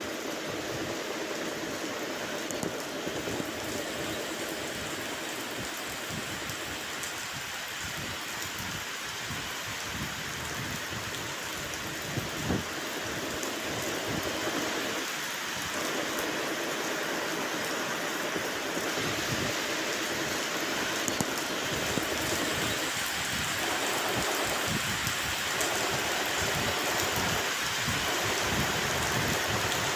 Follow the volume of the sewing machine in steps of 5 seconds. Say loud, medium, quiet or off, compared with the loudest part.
loud, medium, loud, loud, loud, loud.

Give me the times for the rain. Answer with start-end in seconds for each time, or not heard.
0.0-29.9.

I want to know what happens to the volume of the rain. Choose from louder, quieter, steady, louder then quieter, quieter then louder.
louder.